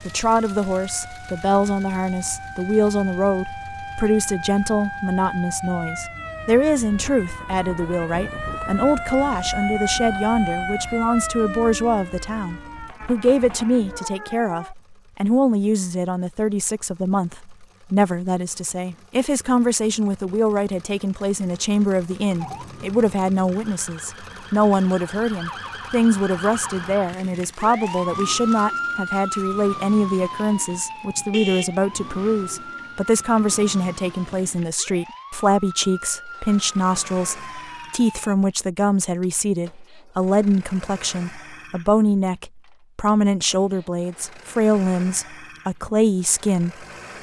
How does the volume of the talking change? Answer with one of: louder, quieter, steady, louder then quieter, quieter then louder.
steady.